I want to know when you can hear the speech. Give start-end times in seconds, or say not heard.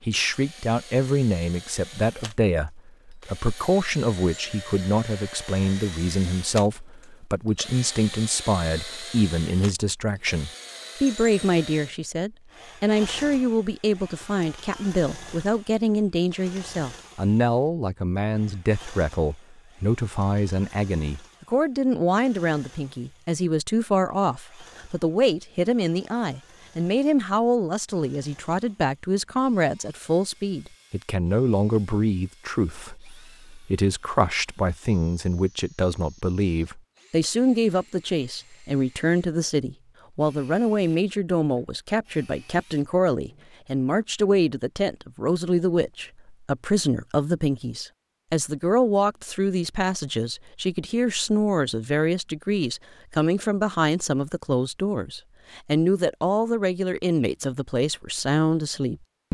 0.0-59.2.